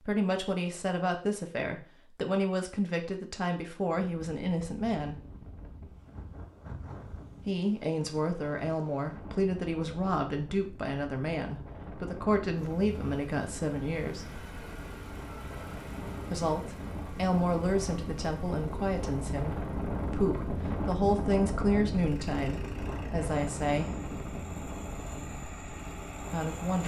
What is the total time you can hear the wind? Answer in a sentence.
You can hear the wind for 23 seconds altogether.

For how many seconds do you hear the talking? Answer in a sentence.
The talking can be heard for 20 seconds in total.